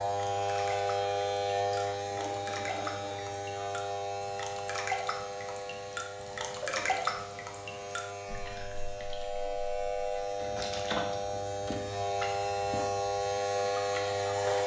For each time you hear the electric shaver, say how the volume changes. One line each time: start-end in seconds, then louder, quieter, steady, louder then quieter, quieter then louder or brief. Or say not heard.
0.0-14.6 quieter then louder.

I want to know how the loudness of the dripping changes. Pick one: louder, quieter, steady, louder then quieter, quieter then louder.
louder then quieter.